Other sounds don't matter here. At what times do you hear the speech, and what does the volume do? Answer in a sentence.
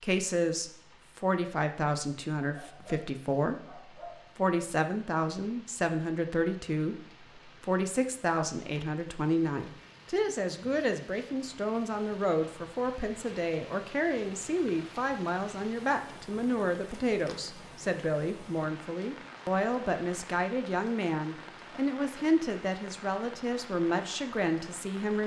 You can hear the speech from 0.0 to 25.2 s, at a steady volume.